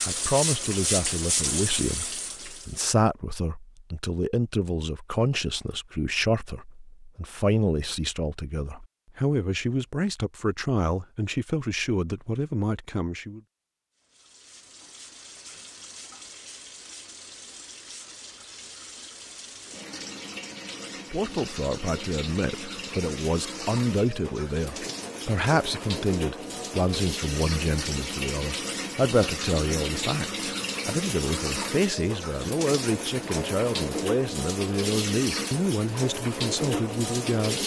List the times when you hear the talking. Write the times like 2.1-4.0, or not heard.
0.1-13.4, 21.1-37.6.